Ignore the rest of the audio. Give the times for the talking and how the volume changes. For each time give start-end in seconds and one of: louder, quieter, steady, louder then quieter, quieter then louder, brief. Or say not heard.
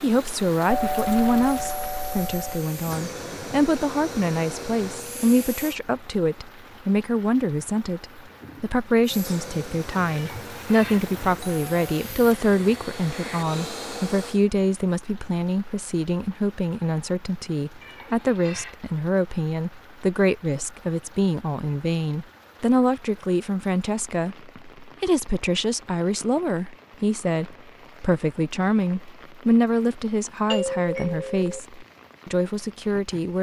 0.0-33.3 steady.